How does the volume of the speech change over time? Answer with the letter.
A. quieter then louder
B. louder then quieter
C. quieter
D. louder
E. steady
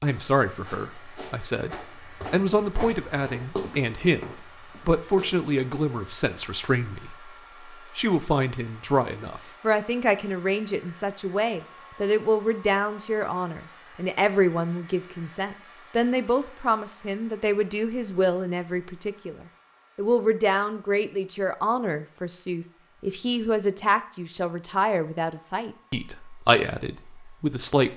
E.